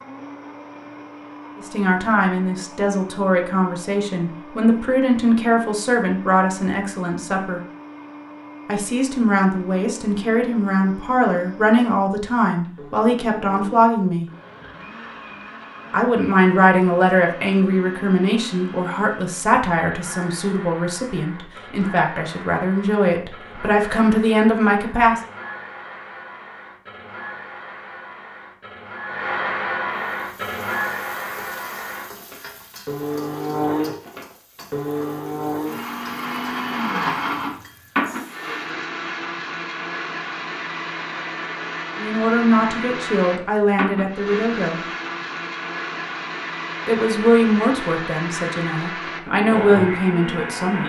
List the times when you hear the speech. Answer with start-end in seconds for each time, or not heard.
1.6-7.6, 8.7-14.2, 15.9-25.2, 42.0-44.8, 46.9-50.8.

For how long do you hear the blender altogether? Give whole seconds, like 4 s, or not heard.
51 s.